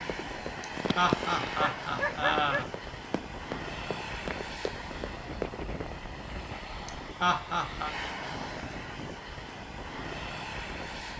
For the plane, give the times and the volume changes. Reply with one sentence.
The plane can be heard from 0.0 to 11.1 s, at a steady volume.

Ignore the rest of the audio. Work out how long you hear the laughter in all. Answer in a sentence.
The laughter can be heard for 3 seconds in total.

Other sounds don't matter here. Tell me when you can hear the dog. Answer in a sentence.
The dog can be heard from 0.8 to 2.6 s.